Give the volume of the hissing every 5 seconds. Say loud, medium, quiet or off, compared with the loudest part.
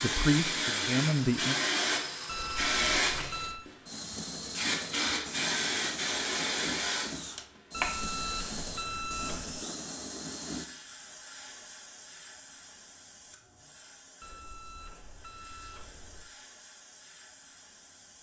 loud, loud, quiet, quiet.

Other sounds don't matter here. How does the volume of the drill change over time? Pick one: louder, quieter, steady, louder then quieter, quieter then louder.
steady.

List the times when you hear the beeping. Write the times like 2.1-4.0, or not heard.
2.2-3.7, 7.7-9.7, 14.2-16.2.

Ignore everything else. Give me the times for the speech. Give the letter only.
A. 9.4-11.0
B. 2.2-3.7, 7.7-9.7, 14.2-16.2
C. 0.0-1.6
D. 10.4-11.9
C.